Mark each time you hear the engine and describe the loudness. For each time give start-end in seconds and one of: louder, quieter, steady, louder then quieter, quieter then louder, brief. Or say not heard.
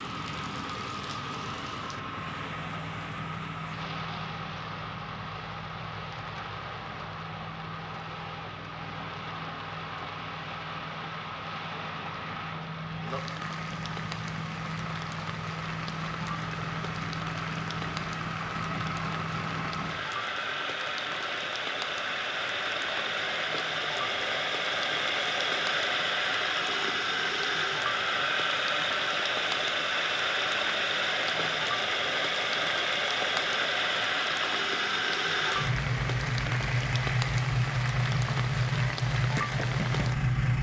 0.0-40.5 louder.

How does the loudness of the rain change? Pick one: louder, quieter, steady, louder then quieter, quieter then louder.
louder.